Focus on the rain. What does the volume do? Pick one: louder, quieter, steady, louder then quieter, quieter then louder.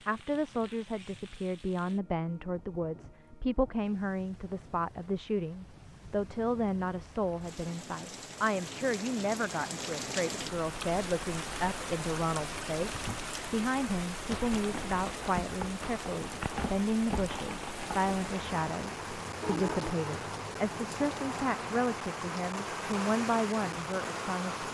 louder.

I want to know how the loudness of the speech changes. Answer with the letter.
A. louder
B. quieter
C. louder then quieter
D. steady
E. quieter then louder
D.